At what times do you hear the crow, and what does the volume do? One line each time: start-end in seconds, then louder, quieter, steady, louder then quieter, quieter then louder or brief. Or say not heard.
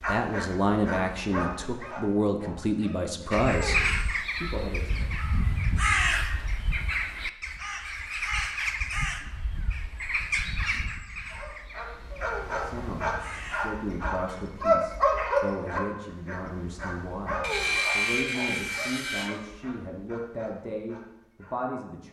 3.3-13.8 quieter.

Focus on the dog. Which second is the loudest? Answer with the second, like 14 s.
15 s.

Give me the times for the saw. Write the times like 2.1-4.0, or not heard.
17.4-19.3.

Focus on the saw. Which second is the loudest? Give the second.
18 s.